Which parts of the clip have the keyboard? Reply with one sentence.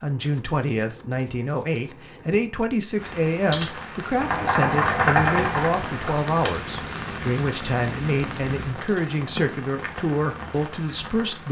You can hear the keyboard from 3.3 to 7.2 s.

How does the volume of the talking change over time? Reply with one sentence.
The loudness of the talking stays about the same.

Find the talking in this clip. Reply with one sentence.
The talking can be heard from 0.0 to 11.4 s.